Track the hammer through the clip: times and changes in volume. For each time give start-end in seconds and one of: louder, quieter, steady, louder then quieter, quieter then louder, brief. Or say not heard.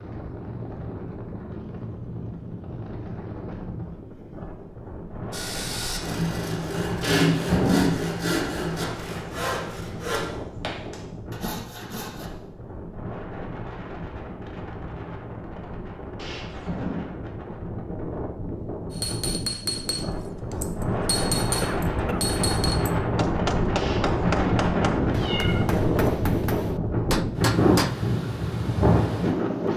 18.9-27.9 steady.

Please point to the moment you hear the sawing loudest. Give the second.
7 s.